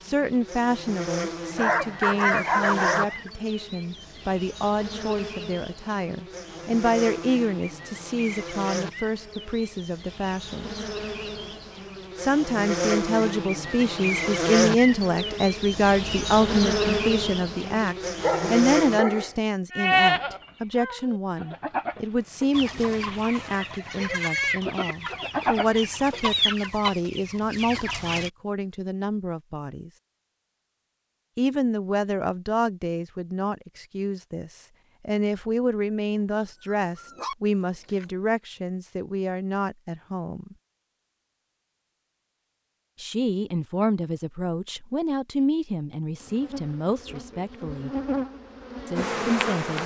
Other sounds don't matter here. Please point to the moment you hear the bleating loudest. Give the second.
20 s.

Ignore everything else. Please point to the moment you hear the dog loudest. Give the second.
2 s.